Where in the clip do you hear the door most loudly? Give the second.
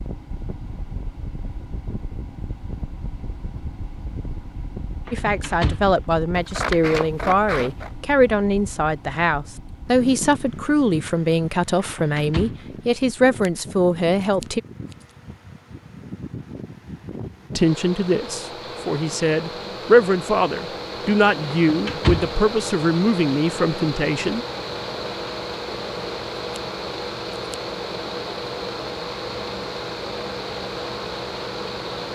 22 s.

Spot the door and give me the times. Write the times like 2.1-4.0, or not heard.
5.0-5.9, 11.8-12.7, 21.5-22.4.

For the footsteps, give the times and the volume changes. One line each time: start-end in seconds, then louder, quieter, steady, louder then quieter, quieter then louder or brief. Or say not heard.
not heard.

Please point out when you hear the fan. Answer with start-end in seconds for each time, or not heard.
0.0-32.0.